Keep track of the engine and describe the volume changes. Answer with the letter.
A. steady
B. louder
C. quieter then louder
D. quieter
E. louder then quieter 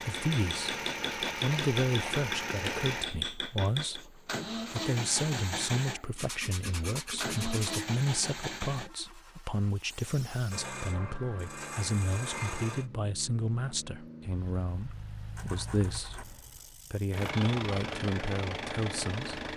C.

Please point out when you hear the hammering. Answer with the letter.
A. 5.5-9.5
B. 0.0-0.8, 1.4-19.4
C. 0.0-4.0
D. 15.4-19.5
C.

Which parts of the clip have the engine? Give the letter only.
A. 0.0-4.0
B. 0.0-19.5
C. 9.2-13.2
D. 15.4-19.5
B.